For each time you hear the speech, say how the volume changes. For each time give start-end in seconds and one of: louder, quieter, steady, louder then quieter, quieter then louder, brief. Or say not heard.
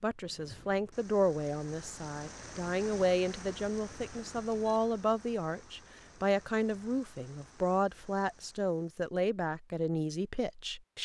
0.0-11.0 steady.